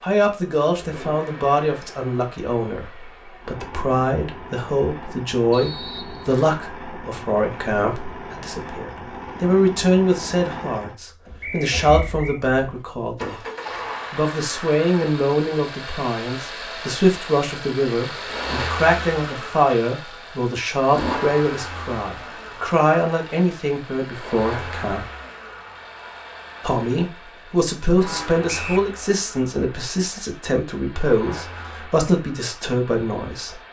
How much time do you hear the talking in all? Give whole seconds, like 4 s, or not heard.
31 s.